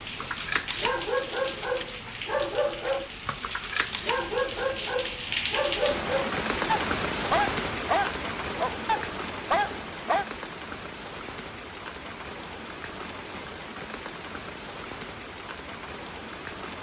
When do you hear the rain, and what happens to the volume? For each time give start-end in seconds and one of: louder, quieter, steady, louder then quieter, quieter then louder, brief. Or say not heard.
0.0-16.7 louder then quieter.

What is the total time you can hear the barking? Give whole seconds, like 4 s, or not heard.
10 s.